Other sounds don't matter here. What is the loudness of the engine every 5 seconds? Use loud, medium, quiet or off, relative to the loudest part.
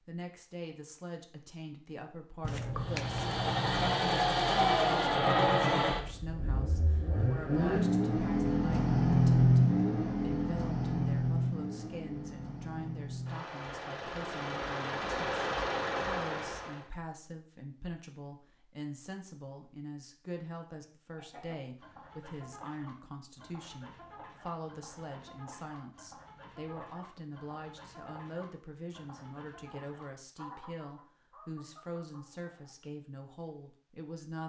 loud, loud, medium, medium, off, off, off.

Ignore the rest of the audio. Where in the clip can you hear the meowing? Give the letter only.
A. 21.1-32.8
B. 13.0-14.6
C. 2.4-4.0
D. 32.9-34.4
C.